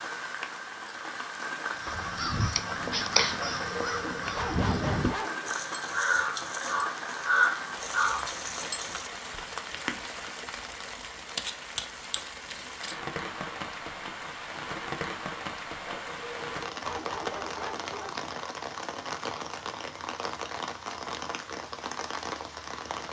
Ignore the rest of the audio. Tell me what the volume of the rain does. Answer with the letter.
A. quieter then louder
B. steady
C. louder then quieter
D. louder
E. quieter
B.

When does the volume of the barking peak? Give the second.
5 s.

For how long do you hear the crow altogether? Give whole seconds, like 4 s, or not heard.
8 s.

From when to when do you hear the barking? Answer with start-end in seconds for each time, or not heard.
3.4-5.5, 15.8-18.2.